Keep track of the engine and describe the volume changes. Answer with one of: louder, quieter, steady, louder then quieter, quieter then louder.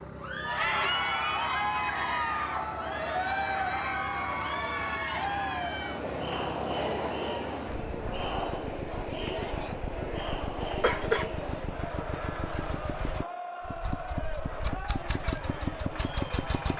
louder.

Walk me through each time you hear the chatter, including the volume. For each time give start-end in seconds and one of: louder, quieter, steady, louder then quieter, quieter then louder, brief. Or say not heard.
0.1-16.7 quieter.